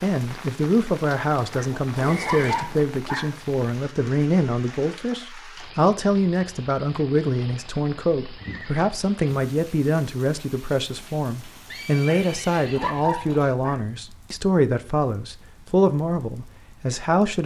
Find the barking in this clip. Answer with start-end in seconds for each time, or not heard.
1.4-3.4, 12.2-13.8.